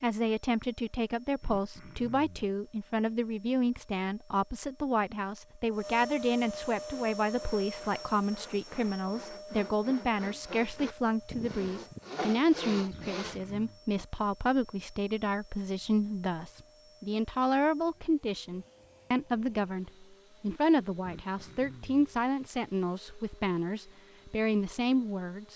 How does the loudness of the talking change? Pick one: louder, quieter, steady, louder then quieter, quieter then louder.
steady.